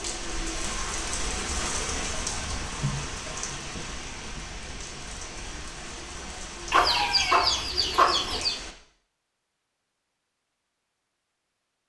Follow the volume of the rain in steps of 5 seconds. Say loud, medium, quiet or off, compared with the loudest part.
loud, medium, off.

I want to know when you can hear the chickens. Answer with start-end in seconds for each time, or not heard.
6.7-8.6.